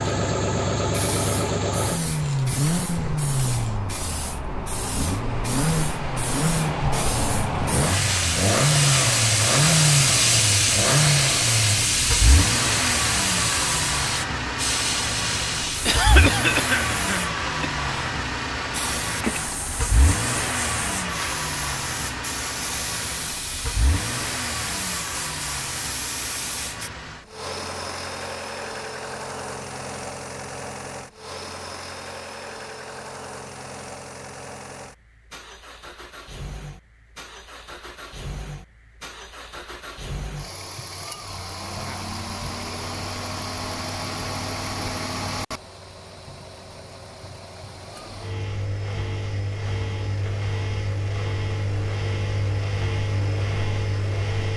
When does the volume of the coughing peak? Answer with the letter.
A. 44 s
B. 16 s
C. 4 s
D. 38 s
B.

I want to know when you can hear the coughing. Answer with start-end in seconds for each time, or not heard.
15.8-17.7.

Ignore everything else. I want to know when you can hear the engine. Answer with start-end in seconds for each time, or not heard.
0.0-54.5.